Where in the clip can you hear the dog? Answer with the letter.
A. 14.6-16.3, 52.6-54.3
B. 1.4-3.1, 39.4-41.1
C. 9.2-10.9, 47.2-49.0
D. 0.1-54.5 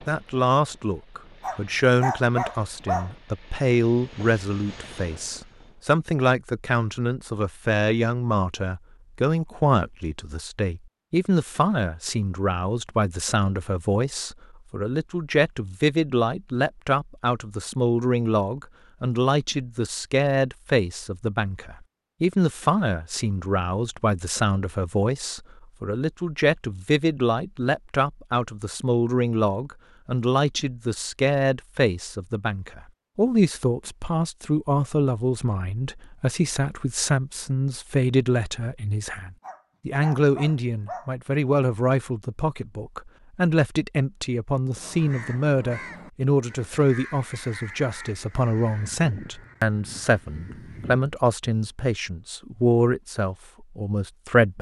B.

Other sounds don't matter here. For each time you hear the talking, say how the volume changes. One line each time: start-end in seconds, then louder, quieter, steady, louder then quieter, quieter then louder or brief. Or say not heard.
0.1-54.5 steady.